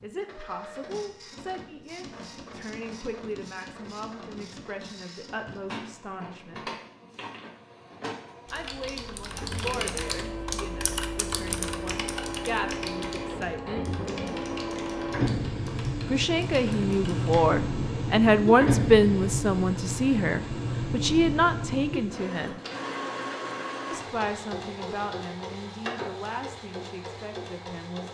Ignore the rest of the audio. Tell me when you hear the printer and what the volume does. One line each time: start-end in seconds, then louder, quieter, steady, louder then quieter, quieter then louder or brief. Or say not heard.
0.0-28.0 louder then quieter.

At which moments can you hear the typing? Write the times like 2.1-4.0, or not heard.
8.4-17.6.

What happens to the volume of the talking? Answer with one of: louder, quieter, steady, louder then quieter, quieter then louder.
louder then quieter.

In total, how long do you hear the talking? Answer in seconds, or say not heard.
23 s.